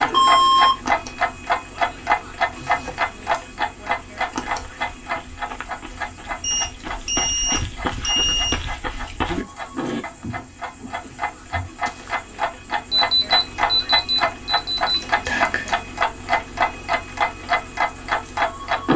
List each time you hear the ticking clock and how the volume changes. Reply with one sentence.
You can hear the ticking clock from 0.0 to 18.9 s, getting quieter then louder.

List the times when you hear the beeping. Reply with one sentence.
The beeping can be heard from 0.1 to 0.8 s, from 6.4 to 8.6 s and from 12.9 to 15.0 s.